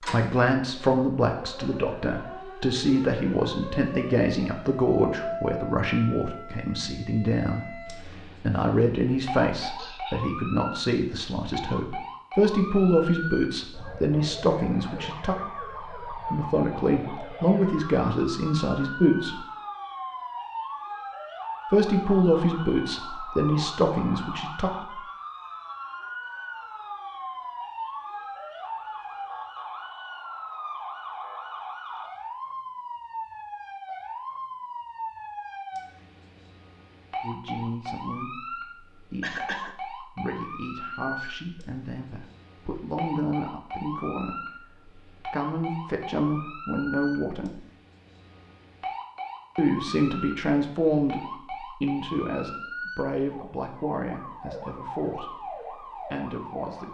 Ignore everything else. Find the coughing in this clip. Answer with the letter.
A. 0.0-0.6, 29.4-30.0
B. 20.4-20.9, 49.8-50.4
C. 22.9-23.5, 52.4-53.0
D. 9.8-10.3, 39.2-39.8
D.